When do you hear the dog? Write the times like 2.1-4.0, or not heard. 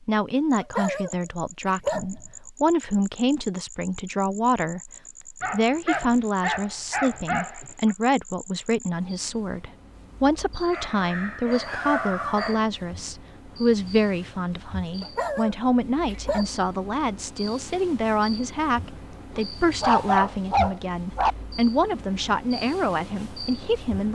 0.6-2.2, 5.4-7.9, 10.7-12.6, 15.0-16.6, 19.3-21.4.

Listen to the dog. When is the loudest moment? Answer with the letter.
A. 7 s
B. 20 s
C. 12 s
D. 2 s
B.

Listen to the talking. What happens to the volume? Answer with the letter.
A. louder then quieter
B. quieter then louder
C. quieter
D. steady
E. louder
D.